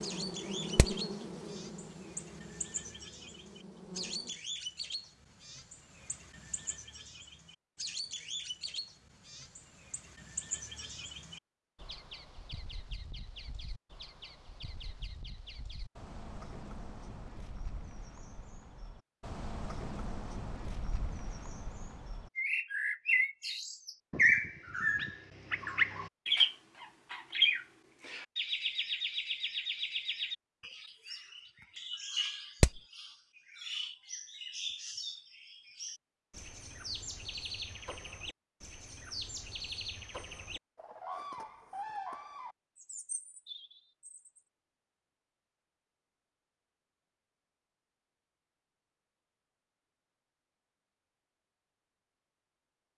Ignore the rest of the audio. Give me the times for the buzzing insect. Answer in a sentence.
You can hear the buzzing insect from 0.0 to 4.4 s.